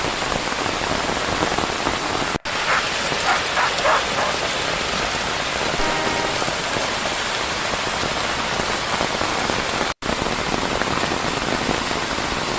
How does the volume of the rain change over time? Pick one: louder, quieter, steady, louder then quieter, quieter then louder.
steady.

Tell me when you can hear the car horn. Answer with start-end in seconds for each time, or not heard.
5.8-6.5.